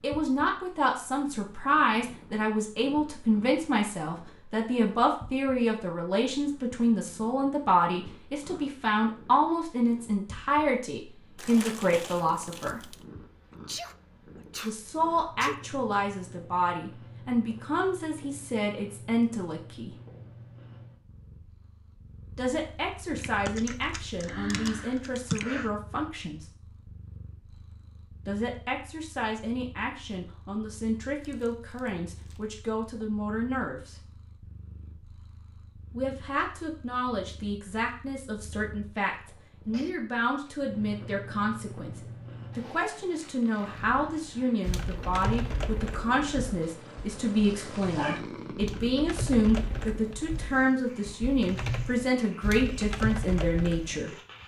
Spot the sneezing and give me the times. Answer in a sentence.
The sneezing can be heard from 13.7 to 15.6 s, from 24.1 to 25.7 s and from 39.2 to 40.0 s.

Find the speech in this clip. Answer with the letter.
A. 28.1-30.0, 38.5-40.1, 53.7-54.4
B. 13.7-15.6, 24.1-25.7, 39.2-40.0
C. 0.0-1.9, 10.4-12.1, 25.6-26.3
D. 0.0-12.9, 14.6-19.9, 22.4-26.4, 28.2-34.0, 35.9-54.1
D.